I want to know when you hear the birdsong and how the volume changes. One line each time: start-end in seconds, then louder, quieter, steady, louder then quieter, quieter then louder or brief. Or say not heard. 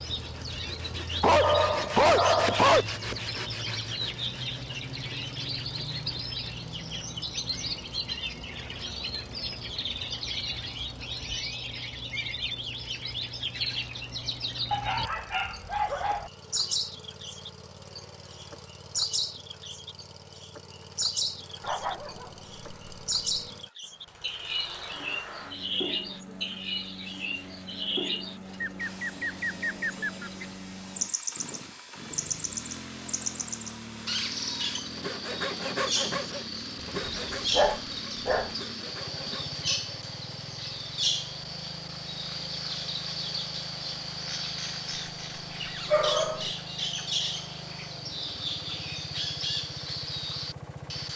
0.0-51.1 steady.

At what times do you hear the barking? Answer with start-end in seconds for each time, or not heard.
1.2-2.9, 14.7-16.3, 21.6-23.4, 37.0-38.5, 45.9-46.5.